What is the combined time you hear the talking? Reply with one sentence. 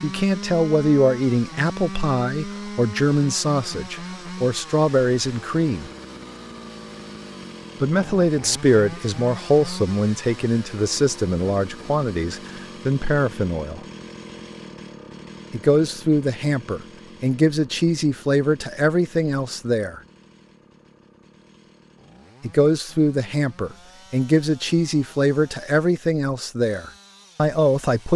The talking can be heard for 22 seconds in total.